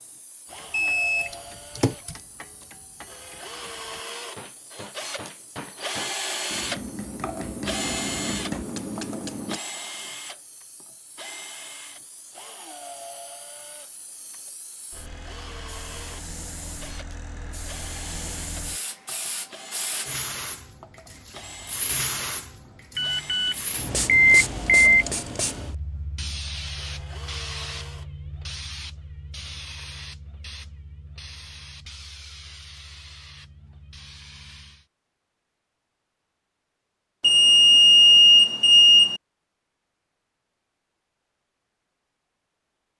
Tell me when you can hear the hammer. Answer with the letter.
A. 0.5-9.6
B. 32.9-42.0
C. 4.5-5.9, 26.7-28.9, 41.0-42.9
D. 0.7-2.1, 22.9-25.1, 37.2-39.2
A.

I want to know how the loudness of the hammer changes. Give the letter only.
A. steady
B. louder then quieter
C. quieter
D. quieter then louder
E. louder
E.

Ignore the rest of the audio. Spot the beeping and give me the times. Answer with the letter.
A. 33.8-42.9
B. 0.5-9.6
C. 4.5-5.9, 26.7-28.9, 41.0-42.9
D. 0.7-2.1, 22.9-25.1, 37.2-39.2
D.